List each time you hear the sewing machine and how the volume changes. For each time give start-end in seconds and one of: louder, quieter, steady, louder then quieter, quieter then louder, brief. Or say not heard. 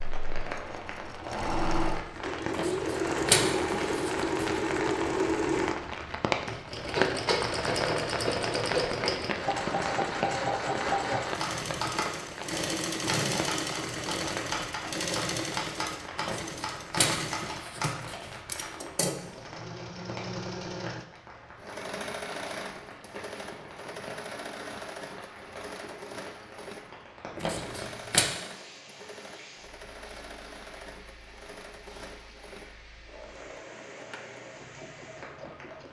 0.0-35.8 quieter.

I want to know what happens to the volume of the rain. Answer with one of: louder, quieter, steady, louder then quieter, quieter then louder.
quieter.